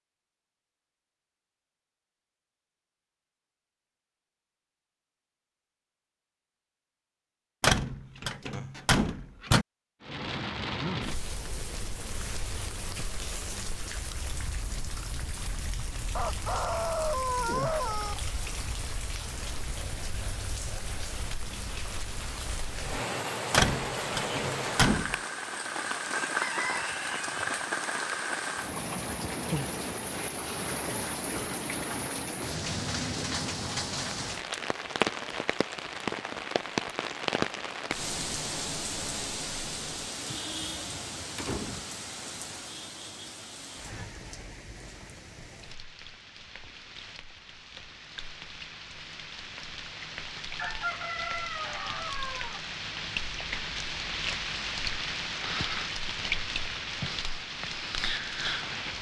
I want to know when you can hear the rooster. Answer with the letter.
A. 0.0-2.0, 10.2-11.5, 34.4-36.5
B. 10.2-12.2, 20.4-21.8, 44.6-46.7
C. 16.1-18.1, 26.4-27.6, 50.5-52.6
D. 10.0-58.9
C.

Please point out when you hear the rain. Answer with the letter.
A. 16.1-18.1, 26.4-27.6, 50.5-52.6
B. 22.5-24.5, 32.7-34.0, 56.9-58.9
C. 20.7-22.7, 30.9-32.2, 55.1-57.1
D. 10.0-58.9
D.